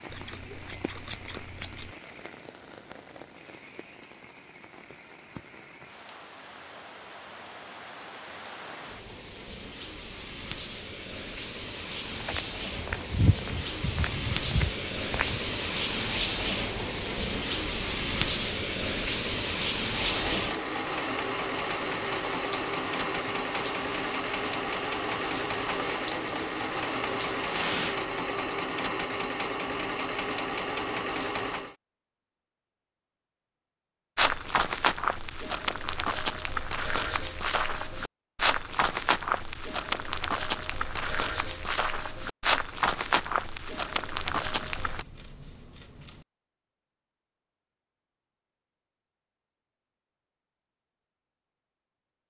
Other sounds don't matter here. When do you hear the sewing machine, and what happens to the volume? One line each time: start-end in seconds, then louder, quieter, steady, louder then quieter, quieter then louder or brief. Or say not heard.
19.9-31.8 steady.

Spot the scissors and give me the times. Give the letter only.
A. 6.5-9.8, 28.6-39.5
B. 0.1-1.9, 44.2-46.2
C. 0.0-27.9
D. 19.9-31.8
B.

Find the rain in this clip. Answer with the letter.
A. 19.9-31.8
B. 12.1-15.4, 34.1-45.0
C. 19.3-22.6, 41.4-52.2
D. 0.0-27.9
D.